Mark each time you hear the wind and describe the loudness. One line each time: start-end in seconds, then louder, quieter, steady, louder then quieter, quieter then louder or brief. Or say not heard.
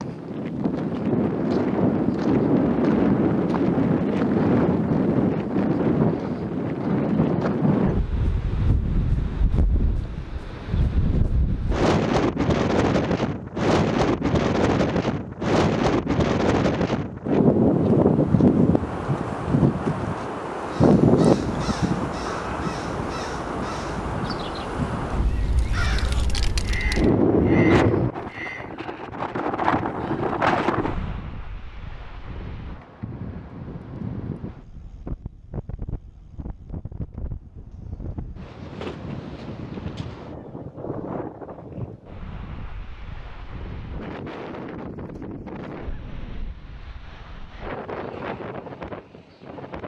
0.0-49.8 quieter.